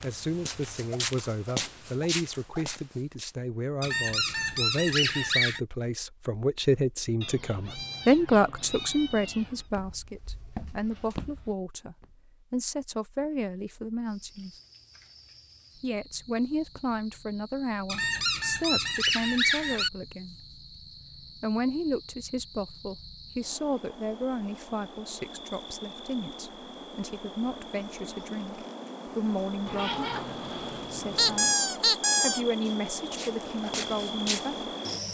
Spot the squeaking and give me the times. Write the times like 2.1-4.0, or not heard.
3.8-5.6, 17.9-19.9, 31.1-32.5.